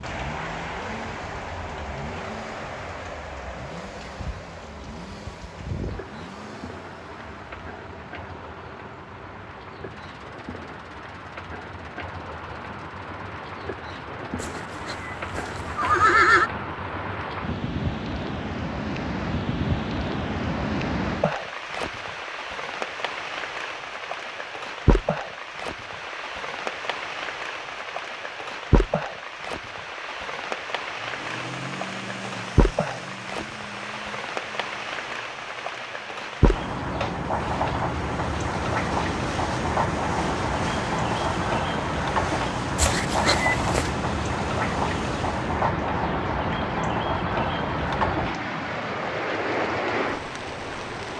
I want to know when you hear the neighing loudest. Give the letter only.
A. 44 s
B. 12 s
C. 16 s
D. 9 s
C.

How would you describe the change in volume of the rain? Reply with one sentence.
The loudness of the rain goes up.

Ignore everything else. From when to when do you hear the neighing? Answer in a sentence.
You can hear the neighing from 14.4 to 16.5 s and from 42.8 to 43.9 s.